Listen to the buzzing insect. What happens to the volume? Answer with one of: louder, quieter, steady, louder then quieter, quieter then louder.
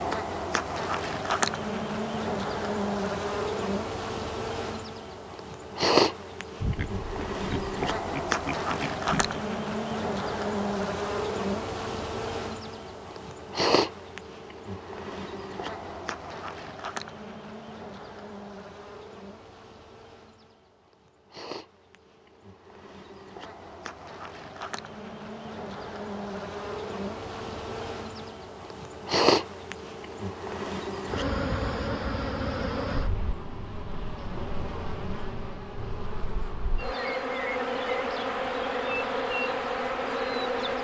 quieter then louder.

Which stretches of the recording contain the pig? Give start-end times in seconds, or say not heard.
6.6-9.4.